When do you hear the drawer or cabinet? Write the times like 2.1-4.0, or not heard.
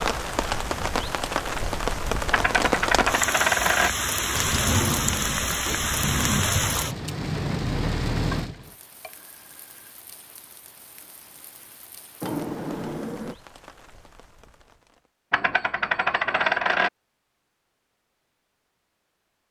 4.3-6.8, 12.2-13.3.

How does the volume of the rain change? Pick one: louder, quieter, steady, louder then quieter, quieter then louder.
quieter.